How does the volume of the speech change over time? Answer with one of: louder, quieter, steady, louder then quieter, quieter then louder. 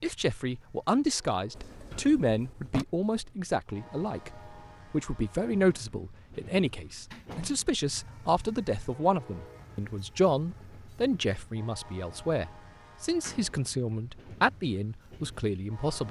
steady.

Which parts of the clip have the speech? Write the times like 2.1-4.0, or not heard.
0.0-16.0.